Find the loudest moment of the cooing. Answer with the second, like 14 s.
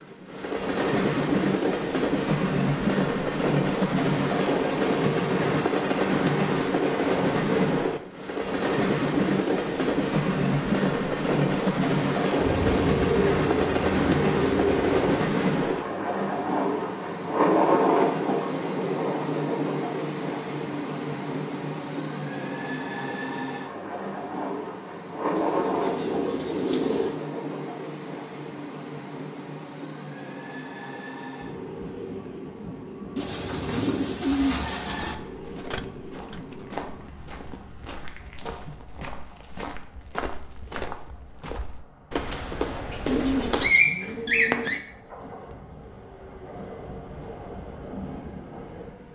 44 s.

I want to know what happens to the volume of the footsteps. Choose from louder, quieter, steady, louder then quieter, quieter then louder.
louder.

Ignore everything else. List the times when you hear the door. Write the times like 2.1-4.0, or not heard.
35.7-36.9.